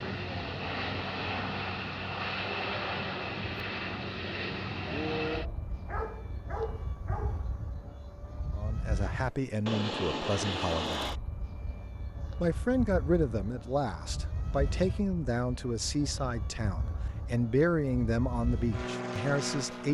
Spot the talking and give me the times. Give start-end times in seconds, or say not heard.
8.6-11.2, 12.4-19.8.